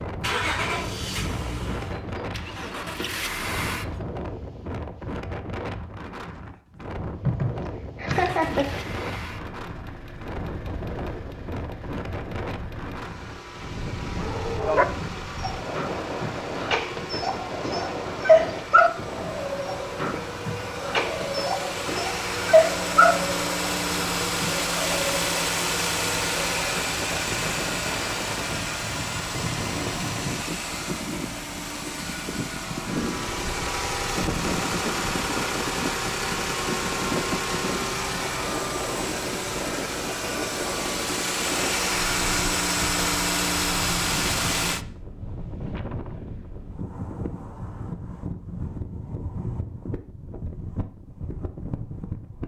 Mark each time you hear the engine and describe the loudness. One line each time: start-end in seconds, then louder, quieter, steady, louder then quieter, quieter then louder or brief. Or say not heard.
0.0-4.0 quieter then louder
8.1-44.9 louder.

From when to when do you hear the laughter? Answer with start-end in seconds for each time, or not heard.
7.2-8.7.